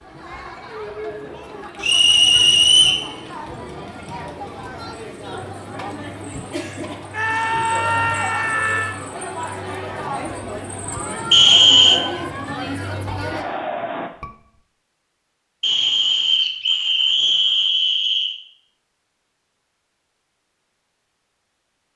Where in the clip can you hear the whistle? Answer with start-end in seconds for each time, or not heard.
1.8-3.0, 11.3-12.0, 15.6-18.4.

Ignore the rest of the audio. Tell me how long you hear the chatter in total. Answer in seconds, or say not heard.
14 s.